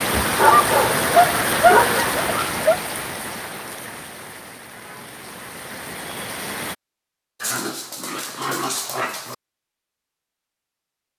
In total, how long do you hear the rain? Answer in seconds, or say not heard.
7 s.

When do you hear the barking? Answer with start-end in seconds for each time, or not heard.
0.3-2.8, 7.4-9.3.